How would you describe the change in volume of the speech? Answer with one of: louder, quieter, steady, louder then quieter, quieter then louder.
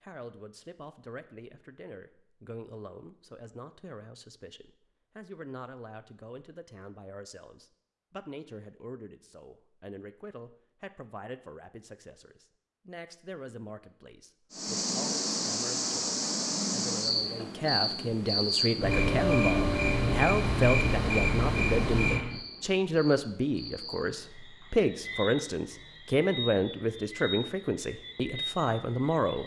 louder.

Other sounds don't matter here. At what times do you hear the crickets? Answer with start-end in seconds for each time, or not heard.
14.5-29.4.